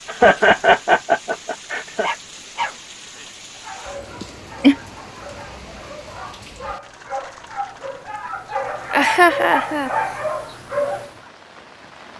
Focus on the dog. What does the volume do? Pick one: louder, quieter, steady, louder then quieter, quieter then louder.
quieter then louder.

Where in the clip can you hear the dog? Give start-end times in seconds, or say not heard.
2.0-11.1.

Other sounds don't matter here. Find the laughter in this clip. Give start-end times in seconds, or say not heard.
0.1-2.1, 4.2-4.8, 8.9-9.9.